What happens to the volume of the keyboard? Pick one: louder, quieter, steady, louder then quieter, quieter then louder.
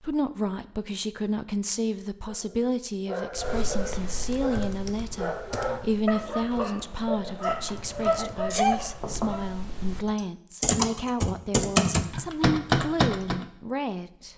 quieter then louder.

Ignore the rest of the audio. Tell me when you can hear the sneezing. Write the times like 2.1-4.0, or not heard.
8.2-8.8.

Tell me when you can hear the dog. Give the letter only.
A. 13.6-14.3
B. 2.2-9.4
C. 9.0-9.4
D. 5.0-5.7
B.